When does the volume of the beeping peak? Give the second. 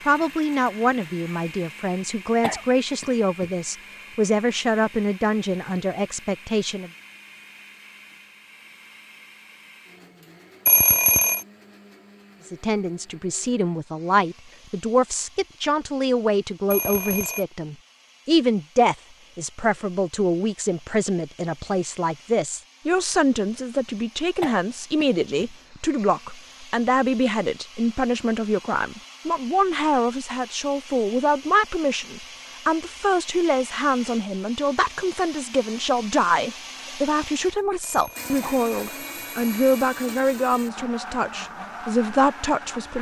11 s.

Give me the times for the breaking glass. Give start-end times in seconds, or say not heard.
not heard.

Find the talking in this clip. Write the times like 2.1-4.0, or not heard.
0.1-6.9, 12.4-42.9.